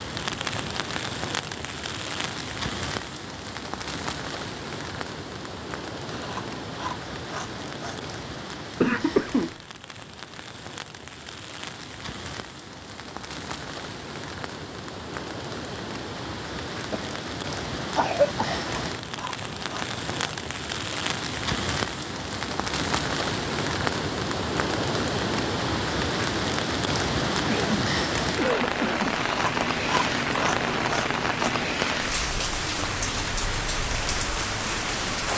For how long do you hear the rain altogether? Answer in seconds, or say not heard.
35 s.